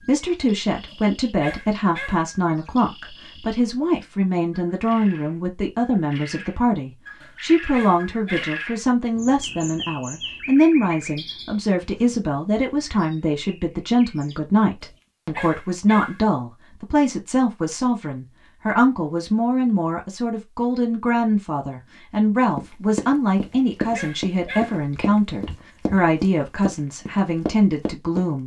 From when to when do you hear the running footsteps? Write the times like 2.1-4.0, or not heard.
22.6-28.4.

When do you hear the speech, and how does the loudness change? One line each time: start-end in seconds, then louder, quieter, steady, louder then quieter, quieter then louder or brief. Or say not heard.
0.0-28.4 steady.